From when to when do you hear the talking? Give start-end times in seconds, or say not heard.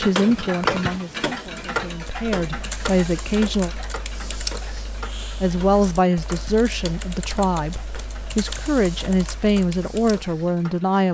0.0-3.7, 5.4-11.1.